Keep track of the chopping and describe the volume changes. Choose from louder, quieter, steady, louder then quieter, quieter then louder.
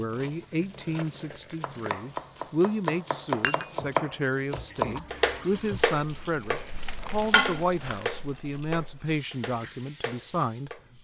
louder then quieter.